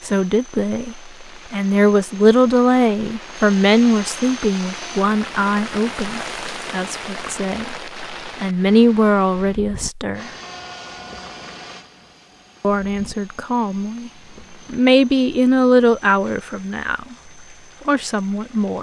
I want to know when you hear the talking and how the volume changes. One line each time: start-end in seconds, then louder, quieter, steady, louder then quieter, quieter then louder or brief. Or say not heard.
0.0-10.3 quieter then louder
12.6-14.1 brief
14.7-17.1 brief
17.9-18.7 brief.